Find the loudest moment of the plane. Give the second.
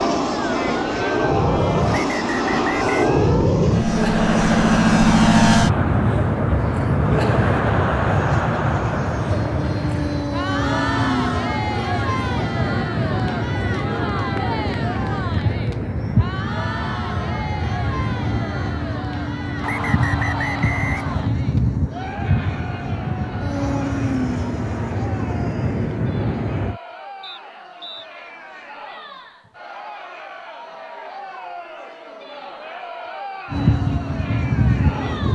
5 s.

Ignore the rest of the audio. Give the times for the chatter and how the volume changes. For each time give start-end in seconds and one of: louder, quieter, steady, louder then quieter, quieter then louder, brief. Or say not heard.
0.0-35.3 quieter.